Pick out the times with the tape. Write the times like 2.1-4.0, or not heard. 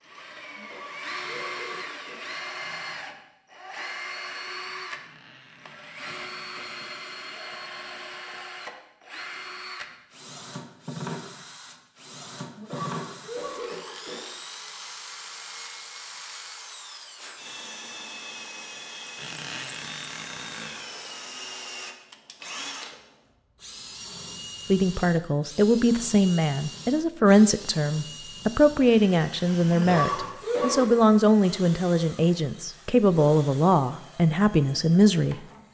not heard.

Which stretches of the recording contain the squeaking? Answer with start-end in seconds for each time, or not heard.
4.9-6.8, 19.1-20.9.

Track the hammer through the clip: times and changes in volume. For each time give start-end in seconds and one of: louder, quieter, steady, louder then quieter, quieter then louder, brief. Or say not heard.
not heard.